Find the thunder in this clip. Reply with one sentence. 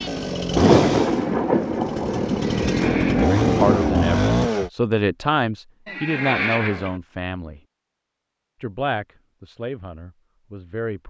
The thunder can be heard from 0.6 to 4.0 s.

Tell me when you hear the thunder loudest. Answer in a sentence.
The loudest moment of the thunder is at 1 second.